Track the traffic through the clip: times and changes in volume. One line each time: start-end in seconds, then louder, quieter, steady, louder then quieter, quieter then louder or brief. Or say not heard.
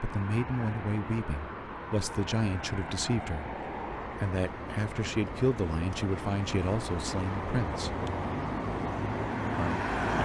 0.0-10.2 louder.